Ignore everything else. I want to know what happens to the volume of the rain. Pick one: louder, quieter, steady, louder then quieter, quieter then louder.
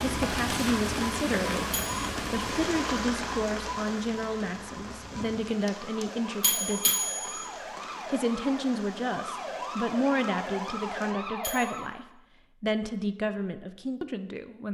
quieter.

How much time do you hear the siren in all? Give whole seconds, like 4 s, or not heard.
12 s.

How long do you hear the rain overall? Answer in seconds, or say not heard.
11 s.